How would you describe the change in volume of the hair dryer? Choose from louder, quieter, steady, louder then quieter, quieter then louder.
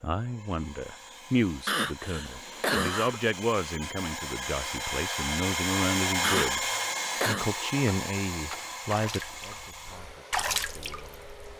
louder then quieter.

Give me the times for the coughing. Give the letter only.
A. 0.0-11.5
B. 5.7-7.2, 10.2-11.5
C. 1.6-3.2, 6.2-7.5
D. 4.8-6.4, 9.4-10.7
C.